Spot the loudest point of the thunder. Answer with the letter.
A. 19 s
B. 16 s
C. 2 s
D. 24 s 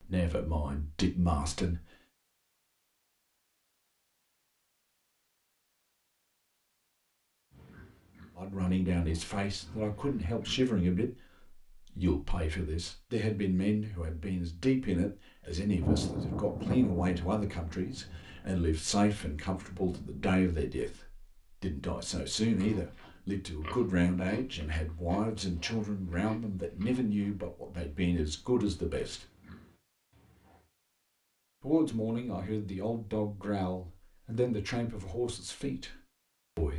B.